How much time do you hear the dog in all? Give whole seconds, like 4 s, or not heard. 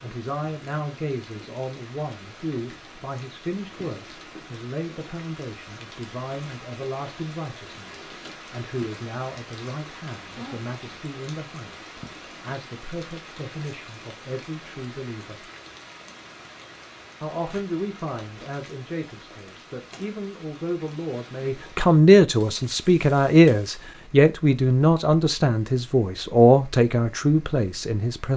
not heard.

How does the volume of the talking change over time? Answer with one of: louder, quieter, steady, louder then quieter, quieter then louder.
louder.